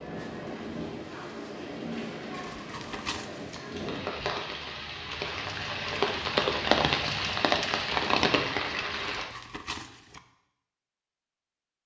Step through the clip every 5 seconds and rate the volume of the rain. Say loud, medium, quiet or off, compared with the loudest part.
medium, loud, off.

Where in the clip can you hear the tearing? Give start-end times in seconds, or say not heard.
2.4-3.6, 9.1-10.2.